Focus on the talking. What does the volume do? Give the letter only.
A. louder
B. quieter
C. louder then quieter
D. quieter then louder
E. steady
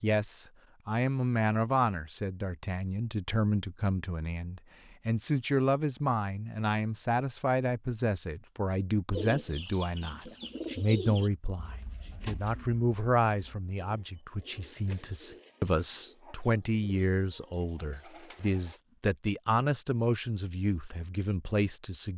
E.